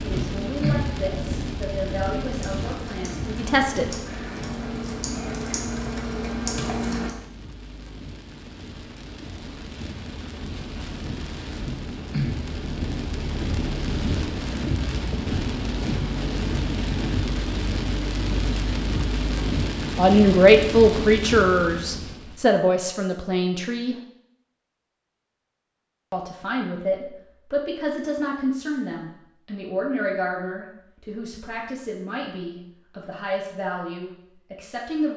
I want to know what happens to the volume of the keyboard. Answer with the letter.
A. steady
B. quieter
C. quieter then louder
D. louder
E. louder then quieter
D.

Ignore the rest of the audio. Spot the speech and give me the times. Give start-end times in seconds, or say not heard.
0.0-3.9, 19.9-23.9, 26.1-35.1.